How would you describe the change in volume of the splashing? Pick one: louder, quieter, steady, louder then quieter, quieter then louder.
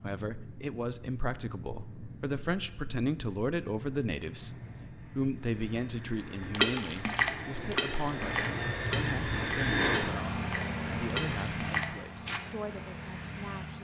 quieter then louder.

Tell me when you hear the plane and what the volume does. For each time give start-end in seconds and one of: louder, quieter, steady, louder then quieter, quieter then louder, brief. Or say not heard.
0.0-13.8 louder then quieter.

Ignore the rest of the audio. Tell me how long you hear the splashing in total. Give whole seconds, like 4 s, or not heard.
6 s.